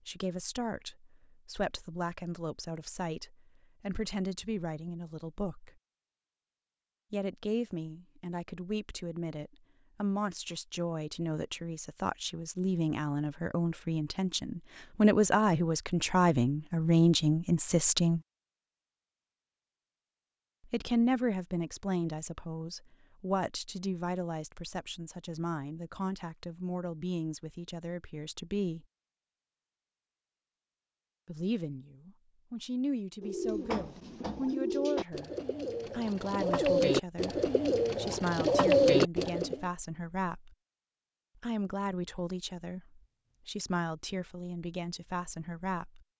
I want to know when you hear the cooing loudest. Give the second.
39 s.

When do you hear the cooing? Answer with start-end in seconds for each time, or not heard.
33.2-39.6.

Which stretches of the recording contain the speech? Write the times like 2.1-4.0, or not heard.
0.1-5.7, 7.1-18.2, 20.7-28.9, 31.2-35.3, 35.9-40.5, 41.4-46.0.